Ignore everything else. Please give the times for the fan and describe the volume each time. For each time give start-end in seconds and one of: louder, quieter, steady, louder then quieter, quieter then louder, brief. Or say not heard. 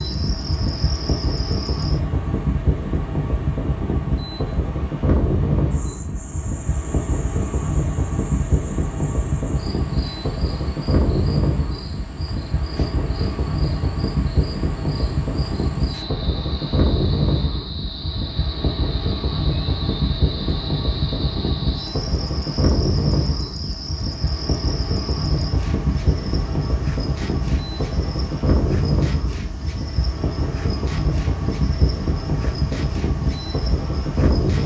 0.0-34.6 steady.